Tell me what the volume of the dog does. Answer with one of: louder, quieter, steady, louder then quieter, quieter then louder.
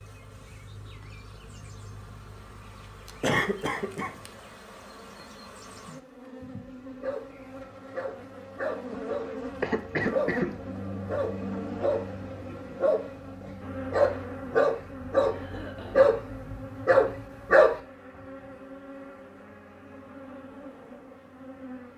louder.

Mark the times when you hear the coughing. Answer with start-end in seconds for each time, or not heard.
3.2-4.2, 9.6-10.6, 15.3-16.1.